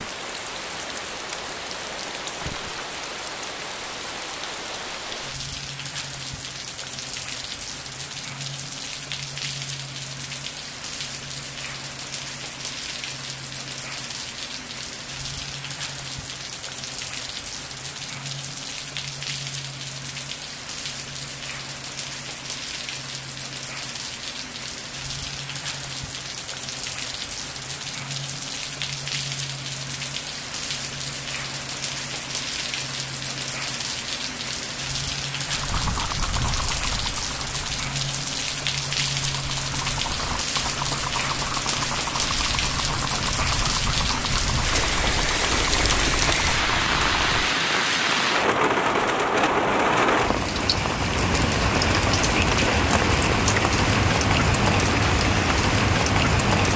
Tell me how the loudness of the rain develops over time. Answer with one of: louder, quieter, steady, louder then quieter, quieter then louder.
louder.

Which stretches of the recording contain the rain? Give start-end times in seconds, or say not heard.
0.0-56.7.